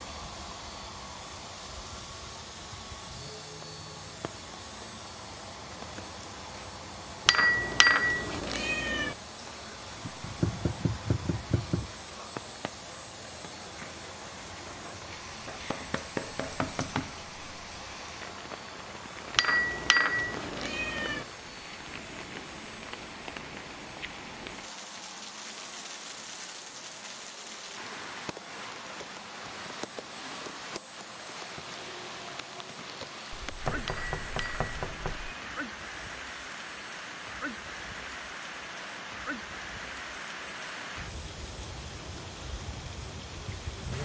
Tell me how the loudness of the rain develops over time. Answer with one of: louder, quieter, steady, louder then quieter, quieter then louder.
louder.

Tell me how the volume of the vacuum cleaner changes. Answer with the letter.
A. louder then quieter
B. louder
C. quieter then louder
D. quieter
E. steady
D.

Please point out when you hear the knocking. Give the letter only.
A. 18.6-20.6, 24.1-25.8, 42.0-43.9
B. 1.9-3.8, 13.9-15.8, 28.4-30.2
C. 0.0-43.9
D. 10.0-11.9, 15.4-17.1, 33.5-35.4
D.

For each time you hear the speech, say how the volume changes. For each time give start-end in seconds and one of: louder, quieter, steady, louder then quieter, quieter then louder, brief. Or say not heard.
not heard.